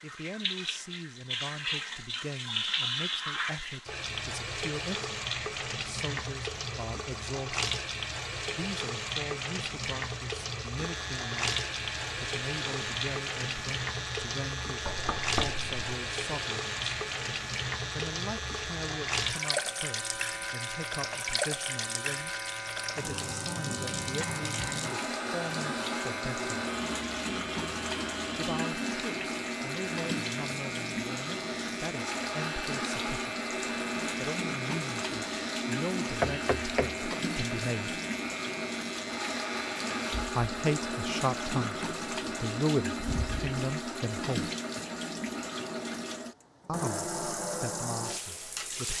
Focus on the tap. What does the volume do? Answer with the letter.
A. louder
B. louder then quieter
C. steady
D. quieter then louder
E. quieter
C.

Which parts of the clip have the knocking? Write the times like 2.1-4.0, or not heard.
14.8-15.8, 36.2-37.1.